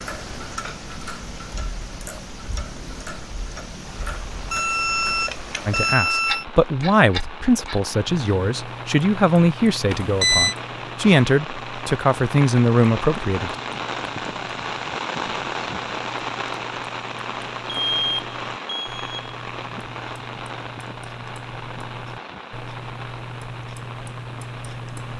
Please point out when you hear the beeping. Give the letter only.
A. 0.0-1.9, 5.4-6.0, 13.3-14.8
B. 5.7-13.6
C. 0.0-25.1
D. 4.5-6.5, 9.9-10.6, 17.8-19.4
D.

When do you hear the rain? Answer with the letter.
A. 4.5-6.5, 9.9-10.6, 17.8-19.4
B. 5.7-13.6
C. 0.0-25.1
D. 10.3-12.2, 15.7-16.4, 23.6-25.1
C.